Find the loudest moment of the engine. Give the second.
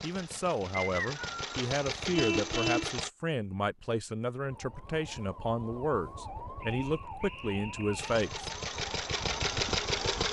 10 s.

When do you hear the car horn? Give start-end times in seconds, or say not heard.
2.1-3.0.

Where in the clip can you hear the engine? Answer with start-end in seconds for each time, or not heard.
0.0-3.1, 8.0-10.2.